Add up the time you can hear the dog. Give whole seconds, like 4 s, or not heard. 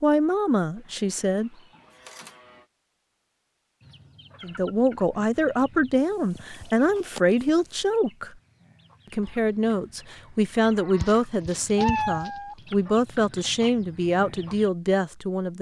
not heard.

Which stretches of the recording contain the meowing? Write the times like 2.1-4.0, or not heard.
1.9-2.4, 6.0-7.8, 10.9-12.6.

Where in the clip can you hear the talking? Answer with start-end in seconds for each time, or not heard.
0.0-1.5, 4.4-8.3, 9.1-15.5.